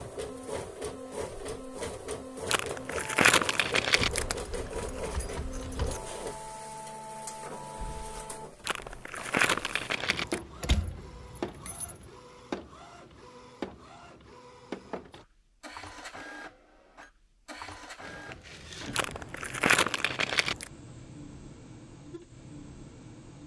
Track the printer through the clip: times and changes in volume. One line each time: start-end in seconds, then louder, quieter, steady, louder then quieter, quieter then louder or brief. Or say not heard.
0.0-23.4 quieter.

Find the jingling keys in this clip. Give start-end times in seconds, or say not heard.
4.0-6.0, 10.1-12.1, 18.0-19.2.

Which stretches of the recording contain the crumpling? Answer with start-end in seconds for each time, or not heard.
2.5-4.4, 8.7-10.4, 18.9-20.7.